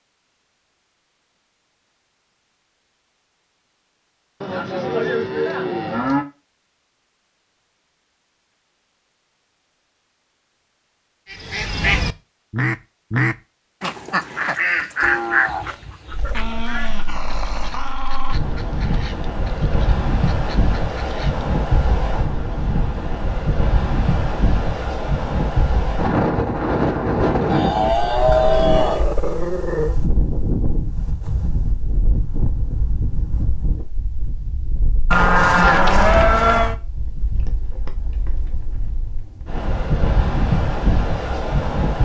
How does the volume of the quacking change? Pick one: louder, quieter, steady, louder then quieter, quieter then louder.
quieter.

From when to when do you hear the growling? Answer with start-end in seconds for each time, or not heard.
16.3-18.4, 27.9-29.9.